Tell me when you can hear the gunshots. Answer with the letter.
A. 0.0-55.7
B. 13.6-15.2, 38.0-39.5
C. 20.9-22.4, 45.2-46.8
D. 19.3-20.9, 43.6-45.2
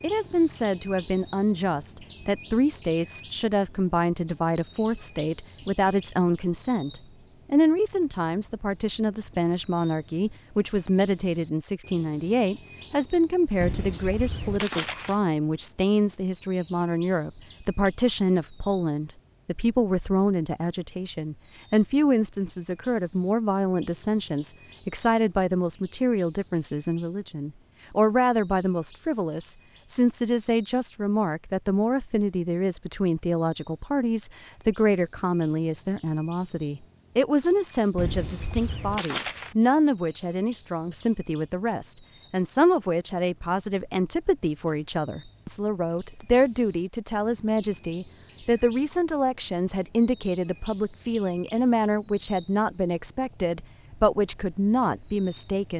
B.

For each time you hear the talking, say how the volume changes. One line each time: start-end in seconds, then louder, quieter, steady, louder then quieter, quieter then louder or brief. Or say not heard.
0.0-55.7 steady.